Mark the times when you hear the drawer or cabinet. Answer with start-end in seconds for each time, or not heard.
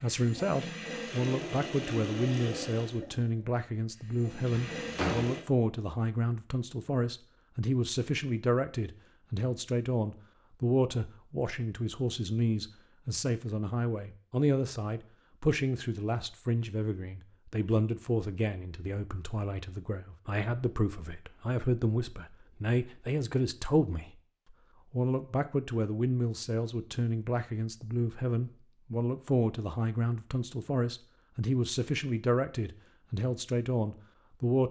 4.5-5.3.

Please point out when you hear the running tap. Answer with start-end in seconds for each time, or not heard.
0.0-5.5.